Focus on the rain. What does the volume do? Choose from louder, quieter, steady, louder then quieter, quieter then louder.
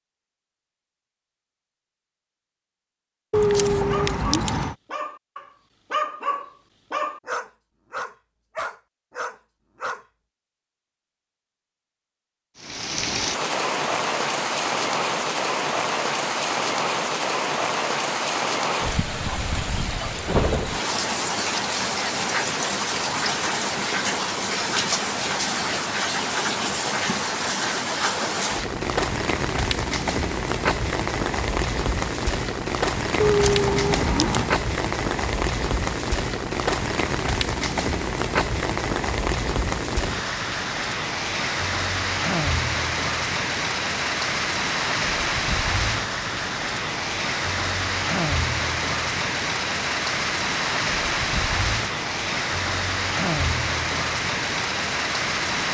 steady.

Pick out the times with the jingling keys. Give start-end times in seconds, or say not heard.
3.3-4.8, 33.2-34.5.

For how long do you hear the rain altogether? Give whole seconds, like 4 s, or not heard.
43 s.